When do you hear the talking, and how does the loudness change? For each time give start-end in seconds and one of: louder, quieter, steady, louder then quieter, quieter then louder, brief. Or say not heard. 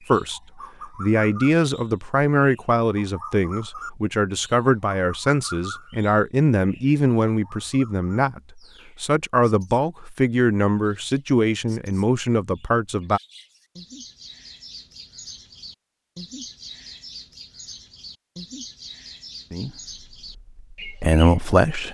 0.1-13.2 steady
19.5-21.8 brief.